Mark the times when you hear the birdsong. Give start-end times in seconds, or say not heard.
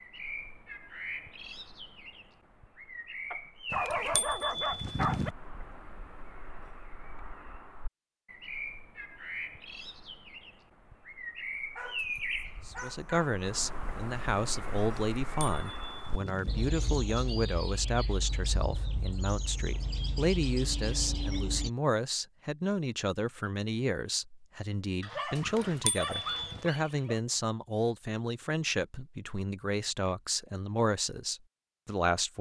0.0-21.7.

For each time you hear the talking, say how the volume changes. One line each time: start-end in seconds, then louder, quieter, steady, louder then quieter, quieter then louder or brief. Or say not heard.
12.7-32.3 steady.